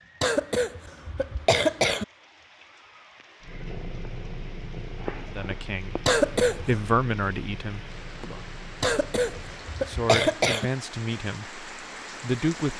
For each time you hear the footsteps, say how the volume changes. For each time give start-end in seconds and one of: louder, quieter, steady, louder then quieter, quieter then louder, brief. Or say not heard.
not heard.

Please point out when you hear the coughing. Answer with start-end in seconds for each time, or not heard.
0.2-2.0, 6.0-6.8, 8.8-10.7.